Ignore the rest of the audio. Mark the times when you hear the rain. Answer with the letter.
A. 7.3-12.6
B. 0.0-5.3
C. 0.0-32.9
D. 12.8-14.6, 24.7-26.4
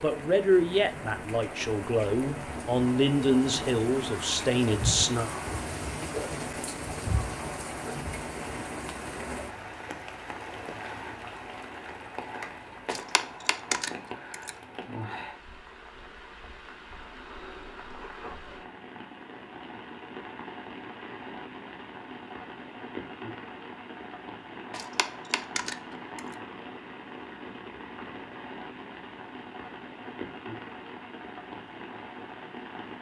C.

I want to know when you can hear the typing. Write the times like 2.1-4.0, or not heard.
12.8-14.6, 24.7-26.4.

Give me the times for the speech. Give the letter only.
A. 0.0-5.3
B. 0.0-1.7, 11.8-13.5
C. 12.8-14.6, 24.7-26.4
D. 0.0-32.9
A.